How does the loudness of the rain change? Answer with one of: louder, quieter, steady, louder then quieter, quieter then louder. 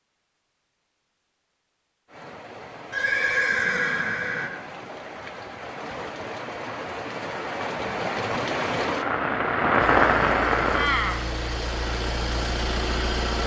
louder.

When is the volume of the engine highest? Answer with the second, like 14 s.
13 s.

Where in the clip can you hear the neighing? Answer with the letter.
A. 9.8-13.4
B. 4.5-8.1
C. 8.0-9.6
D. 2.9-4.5
D.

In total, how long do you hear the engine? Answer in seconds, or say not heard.
4 s.